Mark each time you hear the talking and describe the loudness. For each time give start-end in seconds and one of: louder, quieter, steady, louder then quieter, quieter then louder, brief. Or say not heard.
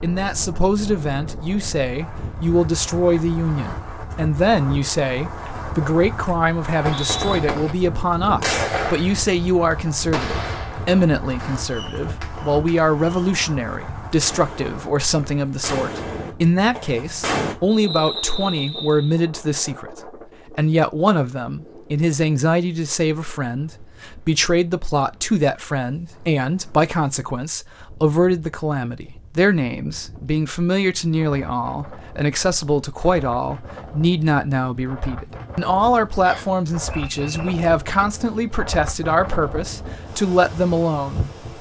0.0-41.3 steady.